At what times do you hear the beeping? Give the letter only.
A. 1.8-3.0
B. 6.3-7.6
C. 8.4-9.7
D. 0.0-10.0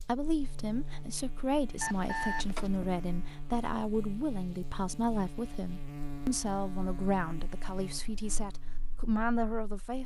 A.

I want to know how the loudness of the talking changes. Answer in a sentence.
The loudness of the talking stays about the same.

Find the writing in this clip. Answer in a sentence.
The writing can't be heard in this clip.